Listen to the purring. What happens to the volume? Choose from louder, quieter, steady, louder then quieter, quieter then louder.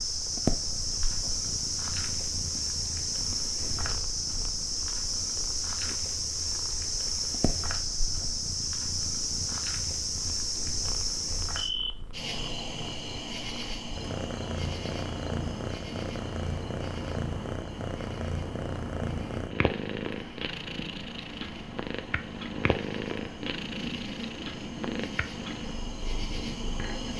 quieter then louder.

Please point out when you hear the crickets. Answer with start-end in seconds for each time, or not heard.
0.0-27.1.